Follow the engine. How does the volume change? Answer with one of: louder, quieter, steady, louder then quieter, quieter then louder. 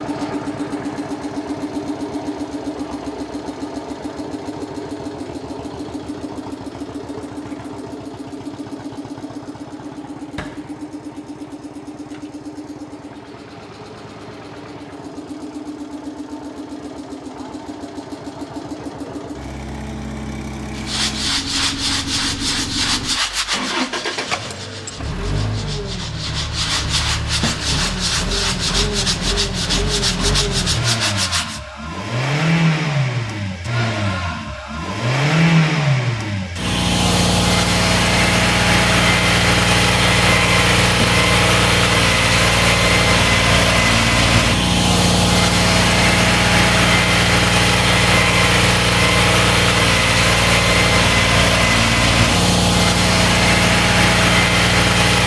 louder.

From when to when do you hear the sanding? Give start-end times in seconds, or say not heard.
20.8-31.6.